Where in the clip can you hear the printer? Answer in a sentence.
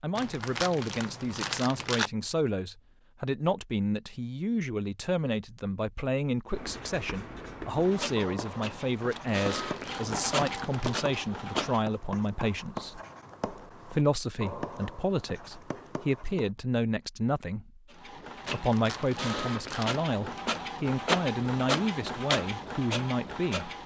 You can hear the printer from 7.8 to 11.8 s and from 17.9 to 23.8 s.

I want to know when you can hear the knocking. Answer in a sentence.
The knocking can't be heard in this clip.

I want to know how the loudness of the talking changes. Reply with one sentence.
The loudness of the talking stays about the same.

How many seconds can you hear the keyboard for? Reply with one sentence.
The keyboard can't be heard in this clip.